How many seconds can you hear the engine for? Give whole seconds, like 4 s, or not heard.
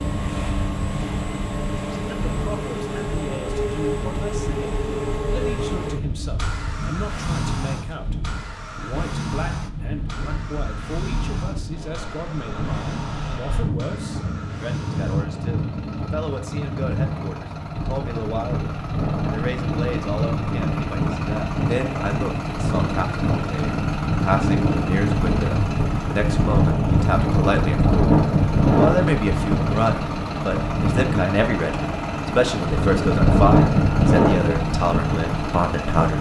36 s.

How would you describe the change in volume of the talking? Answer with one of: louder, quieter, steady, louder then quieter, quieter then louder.
louder.